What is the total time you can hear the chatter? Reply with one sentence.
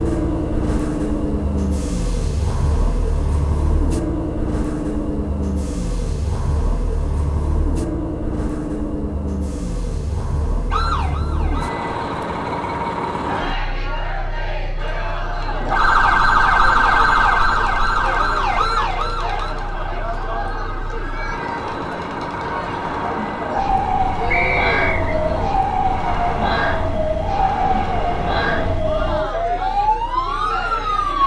The chatter can be heard for 18 seconds in total.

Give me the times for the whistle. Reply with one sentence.
The whistle can be heard from 24.3 to 25.1 s.